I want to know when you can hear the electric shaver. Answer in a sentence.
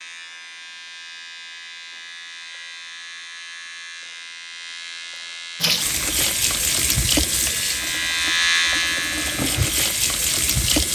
The electric shaver can be heard from 0.0 to 10.9 s.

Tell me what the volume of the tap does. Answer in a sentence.
The loudness of the tap goes down, then up.